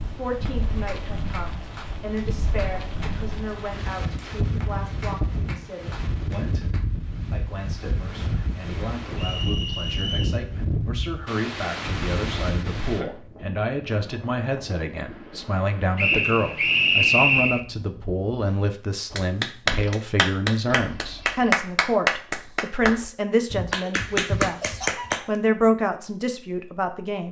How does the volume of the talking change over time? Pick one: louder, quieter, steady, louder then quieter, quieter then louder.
louder.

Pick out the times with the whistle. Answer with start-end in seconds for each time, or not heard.
9.2-10.4, 15.9-17.6.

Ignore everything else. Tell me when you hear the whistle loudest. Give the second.
17 s.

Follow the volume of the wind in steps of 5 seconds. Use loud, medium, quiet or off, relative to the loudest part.
loud, loud, loud, medium, off, off.